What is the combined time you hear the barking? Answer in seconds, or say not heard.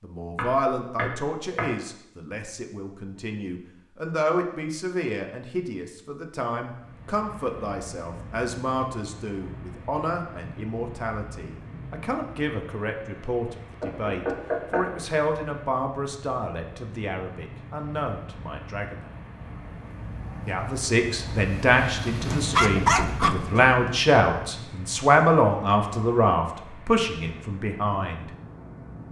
2 s.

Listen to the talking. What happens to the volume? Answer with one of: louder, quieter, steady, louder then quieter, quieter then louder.
louder.